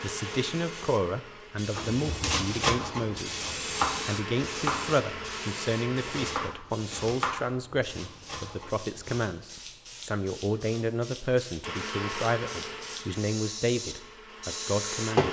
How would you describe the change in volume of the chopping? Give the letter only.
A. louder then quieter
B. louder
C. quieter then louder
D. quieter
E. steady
D.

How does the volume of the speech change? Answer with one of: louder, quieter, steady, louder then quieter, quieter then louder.
steady.